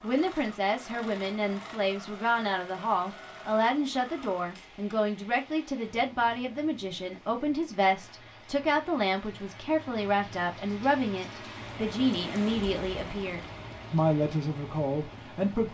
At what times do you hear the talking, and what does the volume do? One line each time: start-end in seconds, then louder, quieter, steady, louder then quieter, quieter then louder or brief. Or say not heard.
0.0-15.6 steady.